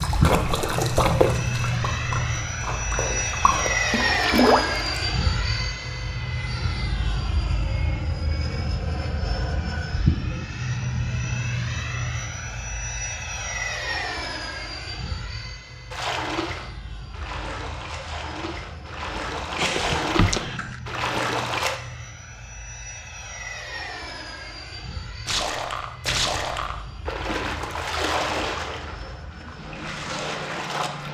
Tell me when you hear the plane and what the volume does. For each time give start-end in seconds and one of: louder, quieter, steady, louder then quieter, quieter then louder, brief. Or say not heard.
0.0-31.0 quieter.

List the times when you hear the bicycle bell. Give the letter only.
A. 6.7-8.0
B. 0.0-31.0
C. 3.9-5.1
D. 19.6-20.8
D.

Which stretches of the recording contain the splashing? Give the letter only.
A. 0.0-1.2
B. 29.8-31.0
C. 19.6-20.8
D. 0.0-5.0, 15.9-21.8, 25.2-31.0
D.